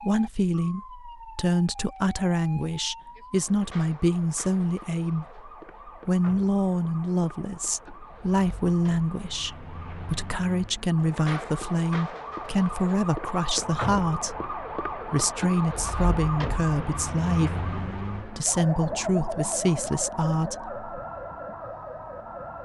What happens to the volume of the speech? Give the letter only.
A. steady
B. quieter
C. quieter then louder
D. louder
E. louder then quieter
A.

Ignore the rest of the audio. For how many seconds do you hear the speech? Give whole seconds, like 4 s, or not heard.
21 s.